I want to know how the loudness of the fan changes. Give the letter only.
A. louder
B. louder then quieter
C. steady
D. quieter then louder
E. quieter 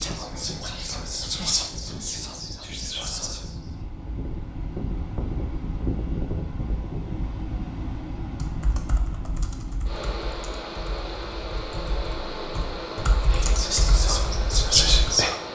A.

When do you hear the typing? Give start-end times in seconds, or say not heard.
8.4-15.1.